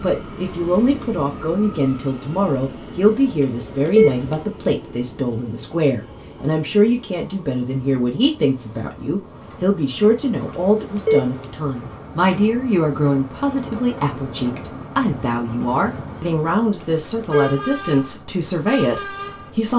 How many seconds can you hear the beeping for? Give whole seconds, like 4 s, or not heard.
3 s.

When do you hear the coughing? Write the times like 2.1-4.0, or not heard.
not heard.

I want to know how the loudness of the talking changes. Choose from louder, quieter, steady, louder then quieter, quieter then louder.
steady.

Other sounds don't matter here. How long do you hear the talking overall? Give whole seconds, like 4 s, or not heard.
20 s.